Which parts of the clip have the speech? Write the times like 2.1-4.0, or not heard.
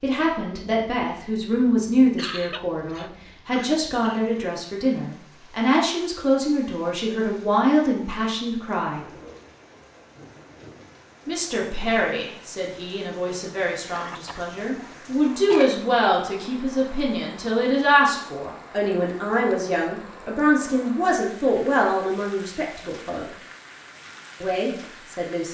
0.0-9.0, 11.2-23.2, 24.4-25.4.